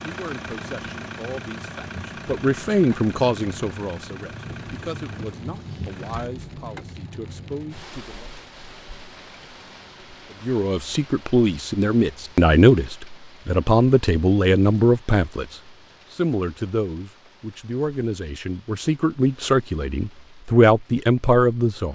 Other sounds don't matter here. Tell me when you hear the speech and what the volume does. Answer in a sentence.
You can hear the speech from 0.0 to 8.3 s, getting louder then quieter; and from 10.4 to 21.8 s, getting quieter then louder.